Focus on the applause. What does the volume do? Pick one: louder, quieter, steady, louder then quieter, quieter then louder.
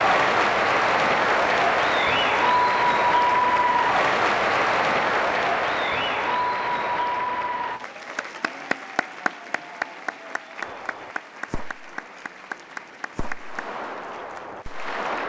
quieter.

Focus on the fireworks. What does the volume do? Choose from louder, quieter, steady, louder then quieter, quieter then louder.
quieter then louder.